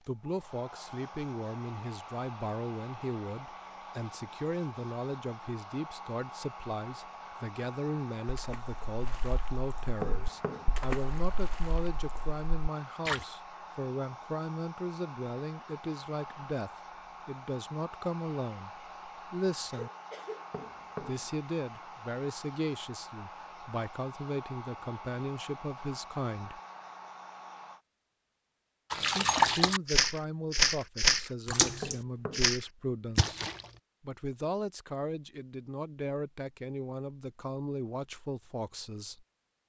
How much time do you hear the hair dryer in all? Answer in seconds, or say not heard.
28 s.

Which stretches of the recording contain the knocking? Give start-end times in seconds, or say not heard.
10.0-10.8, 20.5-21.3, 31.8-32.5.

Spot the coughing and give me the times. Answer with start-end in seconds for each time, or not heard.
19.7-20.5.